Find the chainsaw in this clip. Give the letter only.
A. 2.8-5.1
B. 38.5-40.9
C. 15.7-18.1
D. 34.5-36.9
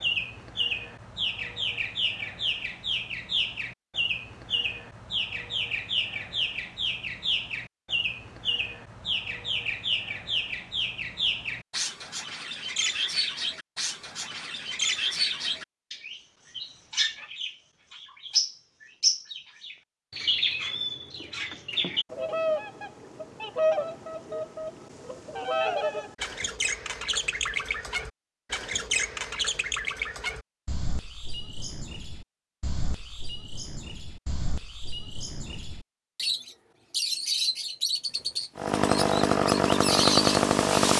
B.